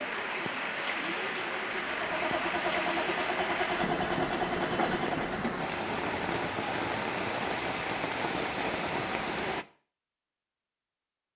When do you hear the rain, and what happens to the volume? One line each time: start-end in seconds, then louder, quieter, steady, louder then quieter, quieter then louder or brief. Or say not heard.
0.0-9.7 steady.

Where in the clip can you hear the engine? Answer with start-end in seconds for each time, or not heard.
1.7-5.5.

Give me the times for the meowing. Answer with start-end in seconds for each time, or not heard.
not heard.